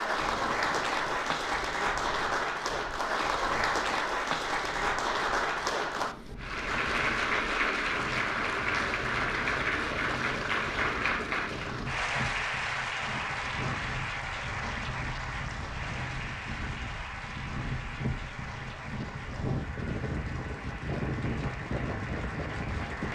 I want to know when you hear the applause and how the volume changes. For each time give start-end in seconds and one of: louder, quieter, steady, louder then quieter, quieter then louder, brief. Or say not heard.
0.0-23.1 quieter.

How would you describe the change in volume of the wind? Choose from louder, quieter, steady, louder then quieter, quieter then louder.
louder.